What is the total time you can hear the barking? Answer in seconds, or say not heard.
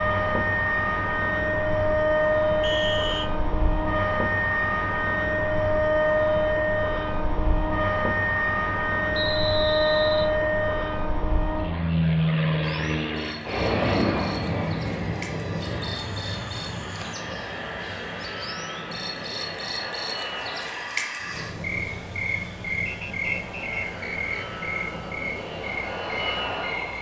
not heard.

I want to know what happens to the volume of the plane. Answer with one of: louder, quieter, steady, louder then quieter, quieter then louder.
quieter.